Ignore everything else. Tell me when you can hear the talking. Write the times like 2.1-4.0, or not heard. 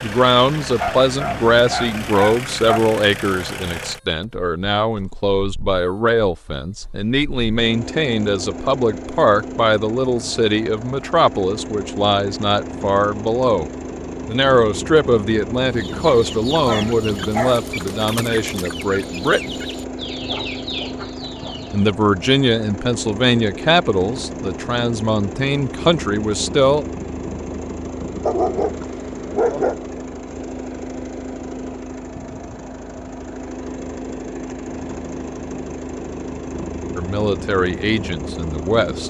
0.0-19.6, 21.7-26.9, 37.0-39.0.